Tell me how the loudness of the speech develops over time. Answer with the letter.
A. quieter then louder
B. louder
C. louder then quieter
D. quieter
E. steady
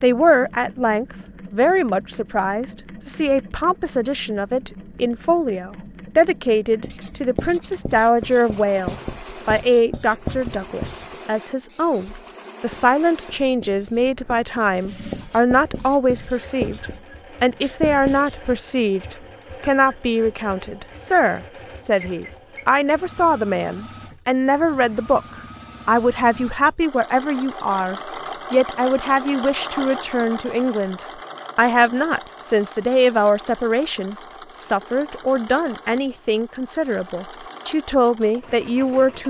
E.